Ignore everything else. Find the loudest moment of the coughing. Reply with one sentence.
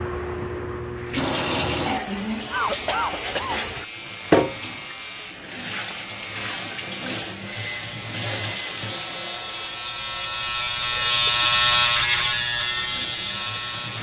The volume of the coughing peaks at 3 seconds.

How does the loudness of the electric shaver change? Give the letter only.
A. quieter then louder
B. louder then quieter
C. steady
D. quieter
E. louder
E.